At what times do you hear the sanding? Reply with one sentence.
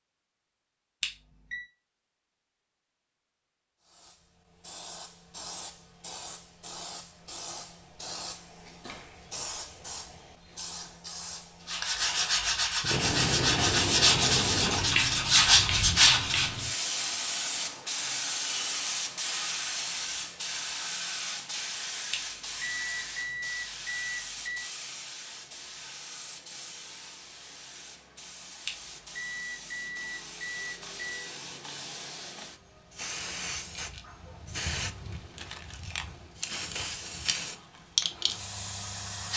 You can hear the sanding from 11.7 to 16.6 s.